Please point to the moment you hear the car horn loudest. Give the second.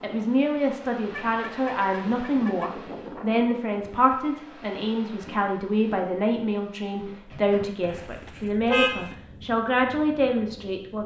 9 s.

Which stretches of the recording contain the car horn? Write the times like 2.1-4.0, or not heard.
1.1-2.7, 7.8-9.2.